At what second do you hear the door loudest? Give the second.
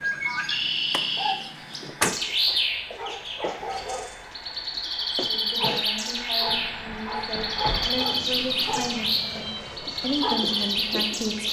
2 s.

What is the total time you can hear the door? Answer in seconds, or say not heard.
3 s.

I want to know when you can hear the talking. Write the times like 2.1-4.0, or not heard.
5.2-11.4.